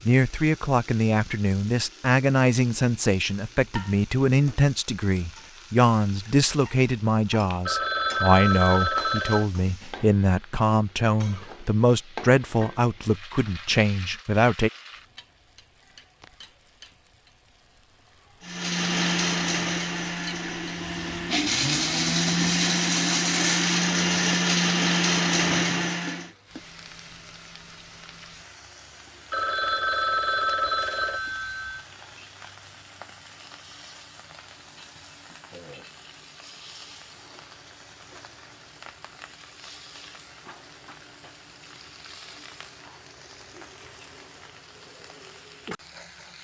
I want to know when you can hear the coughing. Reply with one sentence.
You can't hear the coughing here.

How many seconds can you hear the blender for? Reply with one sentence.
The blender can be heard for 8 seconds in total.